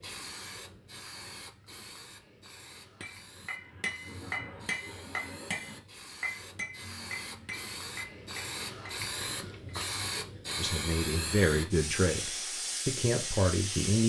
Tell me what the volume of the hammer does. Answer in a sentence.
The loudness of the hammer goes down.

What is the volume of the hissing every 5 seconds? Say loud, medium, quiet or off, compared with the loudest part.
quiet, medium, loud.